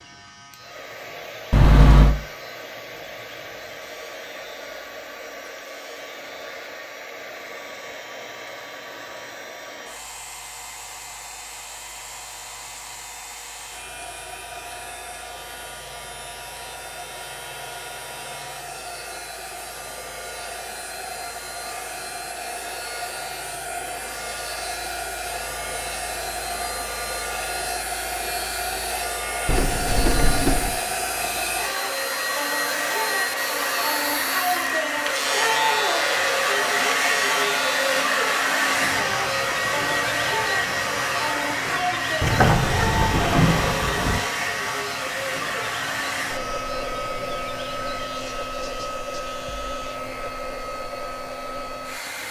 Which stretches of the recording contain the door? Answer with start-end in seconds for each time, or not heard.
1.5-2.1, 29.4-30.8, 42.2-44.2.